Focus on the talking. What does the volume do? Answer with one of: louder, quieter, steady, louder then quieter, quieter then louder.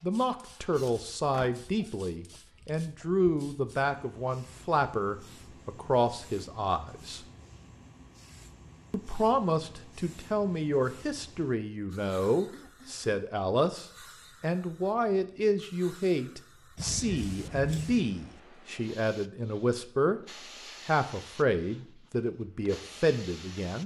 steady.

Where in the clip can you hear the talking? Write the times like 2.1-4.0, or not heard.
0.0-7.2, 8.9-23.8.